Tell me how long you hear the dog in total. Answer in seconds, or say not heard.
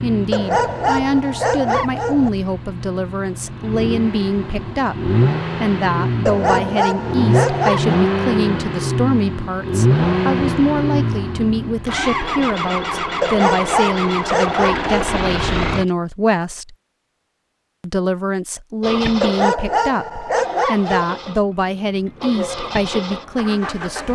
8 s.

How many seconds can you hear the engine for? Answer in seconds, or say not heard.
21 s.